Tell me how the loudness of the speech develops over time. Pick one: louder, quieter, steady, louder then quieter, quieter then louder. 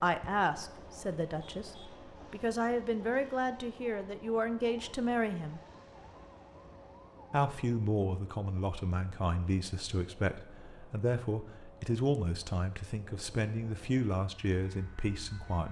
steady.